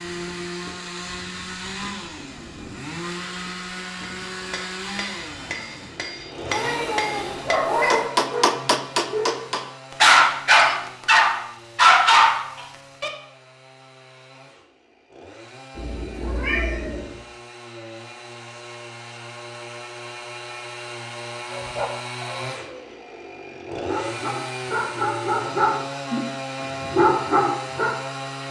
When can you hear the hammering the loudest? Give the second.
8 s.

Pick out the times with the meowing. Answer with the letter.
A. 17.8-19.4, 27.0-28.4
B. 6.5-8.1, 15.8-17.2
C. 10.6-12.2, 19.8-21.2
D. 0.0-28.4
B.